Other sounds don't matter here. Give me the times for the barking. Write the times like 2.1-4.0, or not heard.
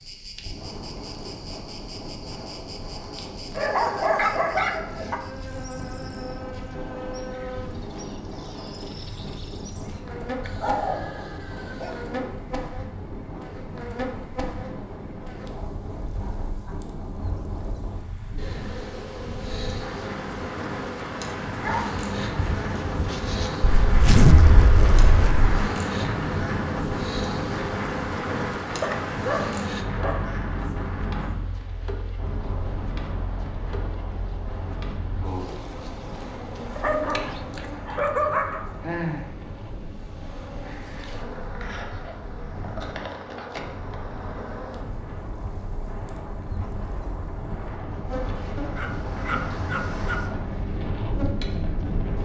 3.5-5.2, 10.4-12.1, 21.6-23.5, 28.8-30.4, 36.8-38.6, 48.8-50.3.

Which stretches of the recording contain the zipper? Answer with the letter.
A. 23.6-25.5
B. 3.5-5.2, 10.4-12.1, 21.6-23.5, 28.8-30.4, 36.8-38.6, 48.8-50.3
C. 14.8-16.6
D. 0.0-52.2
A.